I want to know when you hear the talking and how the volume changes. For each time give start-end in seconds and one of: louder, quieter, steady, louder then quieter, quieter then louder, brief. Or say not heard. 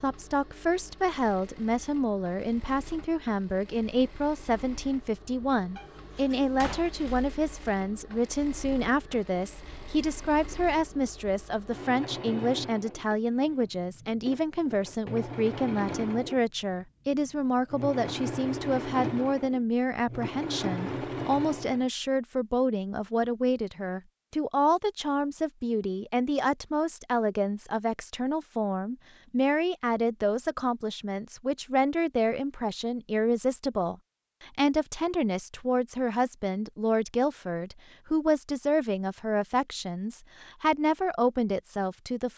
0.0-42.3 steady.